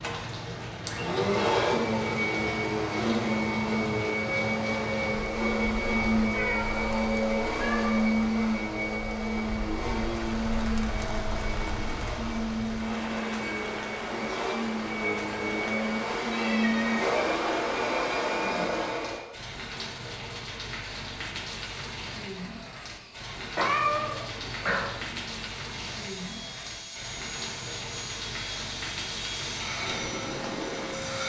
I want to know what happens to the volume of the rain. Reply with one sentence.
The loudness of the rain stays about the same.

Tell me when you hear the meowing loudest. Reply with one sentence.
The volume of the meowing peaks at 24 seconds.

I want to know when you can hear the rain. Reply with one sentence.
You can hear the rain from 0.0 to 31.2 s.